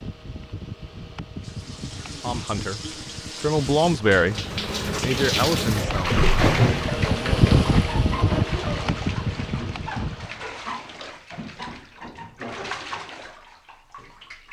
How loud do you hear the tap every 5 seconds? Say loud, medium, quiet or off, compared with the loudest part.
medium, loud, medium.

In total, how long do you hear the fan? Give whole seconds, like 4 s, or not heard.
10 s.